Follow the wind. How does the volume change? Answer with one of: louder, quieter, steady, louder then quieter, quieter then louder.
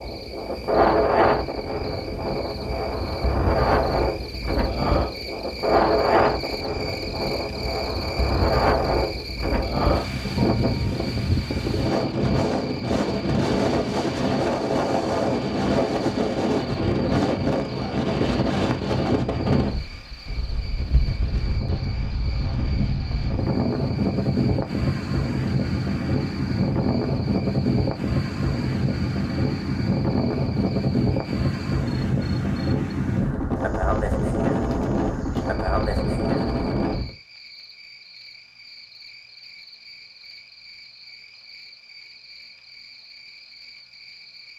steady.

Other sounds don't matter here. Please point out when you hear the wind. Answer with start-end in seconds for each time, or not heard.
0.0-37.1.